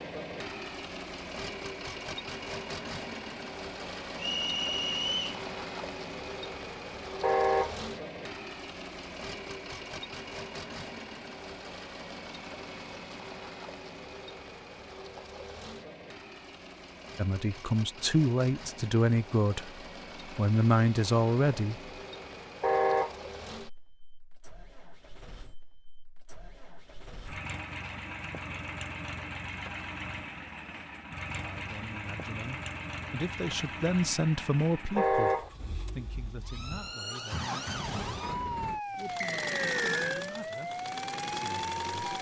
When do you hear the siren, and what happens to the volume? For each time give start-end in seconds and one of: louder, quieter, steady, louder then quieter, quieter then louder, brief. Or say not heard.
36.4-42.1 steady.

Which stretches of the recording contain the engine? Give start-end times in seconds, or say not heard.
0.0-42.1.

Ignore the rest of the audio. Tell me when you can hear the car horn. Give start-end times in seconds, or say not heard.
7.2-7.8, 22.6-23.1, 35.0-35.5.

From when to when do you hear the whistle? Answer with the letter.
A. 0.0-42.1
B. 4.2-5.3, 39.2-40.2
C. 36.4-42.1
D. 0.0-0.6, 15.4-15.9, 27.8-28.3
B.